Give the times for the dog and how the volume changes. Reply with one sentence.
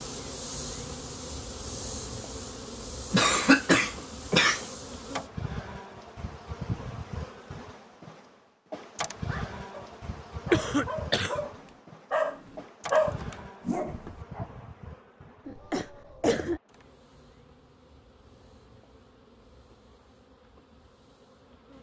The dog can be heard from 9.2 to 14.7 s, getting louder then quieter.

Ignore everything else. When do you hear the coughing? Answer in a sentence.
The coughing can be heard from 3.1 to 4.7 s, from 10.5 to 11.4 s and from 15.4 to 16.6 s.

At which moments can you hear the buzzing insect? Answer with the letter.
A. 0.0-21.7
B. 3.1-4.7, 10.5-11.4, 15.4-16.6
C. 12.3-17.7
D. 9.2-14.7
A.